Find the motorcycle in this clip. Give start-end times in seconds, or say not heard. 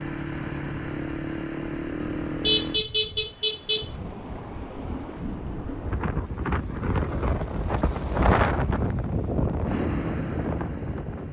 0.0-2.8, 9.7-11.2.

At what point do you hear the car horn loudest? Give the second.
3 s.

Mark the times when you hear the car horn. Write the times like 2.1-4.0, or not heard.
2.0-3.9.